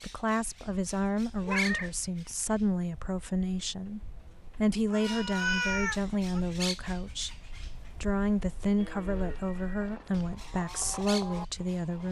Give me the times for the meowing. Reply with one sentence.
You can hear the meowing from 1.4 to 2.4 s, from 4.9 to 6.4 s and from 9.1 to 10.3 s.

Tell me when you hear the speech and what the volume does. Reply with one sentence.
You can hear the speech from 0.0 to 12.0 s, at a steady volume.